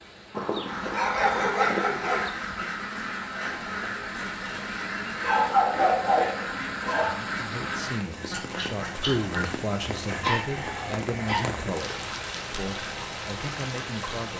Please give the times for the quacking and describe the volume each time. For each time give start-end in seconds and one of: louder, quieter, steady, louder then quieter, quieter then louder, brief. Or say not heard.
0.7-9.5 steady.